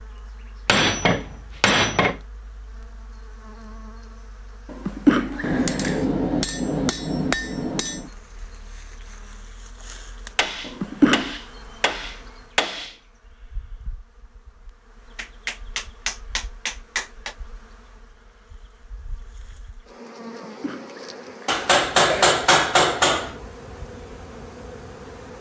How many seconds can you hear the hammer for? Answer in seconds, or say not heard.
11 s.